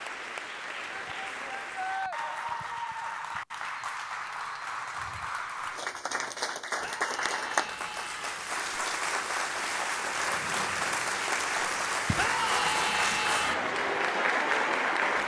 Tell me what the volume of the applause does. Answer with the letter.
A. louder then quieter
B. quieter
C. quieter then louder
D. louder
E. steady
D.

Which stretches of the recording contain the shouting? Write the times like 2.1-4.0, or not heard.
0.9-2.2, 6.8-8.4, 12.2-13.7.